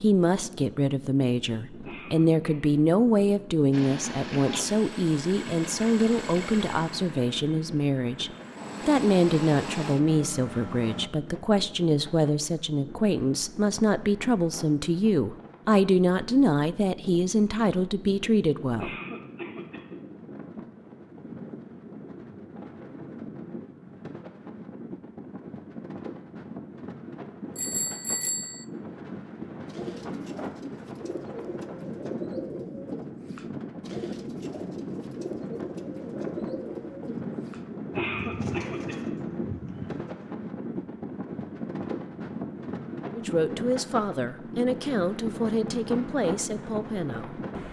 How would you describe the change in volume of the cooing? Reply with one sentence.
The loudness of the cooing stays about the same.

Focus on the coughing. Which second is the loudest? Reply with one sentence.
The loudest moment of the coughing is at 38 seconds.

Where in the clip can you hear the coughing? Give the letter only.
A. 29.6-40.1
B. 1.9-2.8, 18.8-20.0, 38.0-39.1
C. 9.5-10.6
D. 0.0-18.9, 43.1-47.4
B.